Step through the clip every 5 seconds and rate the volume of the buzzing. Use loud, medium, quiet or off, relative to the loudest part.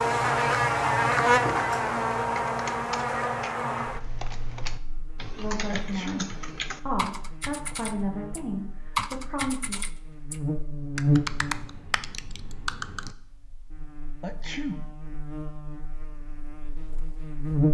loud, quiet, medium, medium.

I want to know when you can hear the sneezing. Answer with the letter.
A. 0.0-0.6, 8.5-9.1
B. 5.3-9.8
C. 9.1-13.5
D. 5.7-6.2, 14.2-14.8
D.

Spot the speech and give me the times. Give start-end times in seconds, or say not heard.
5.3-9.8.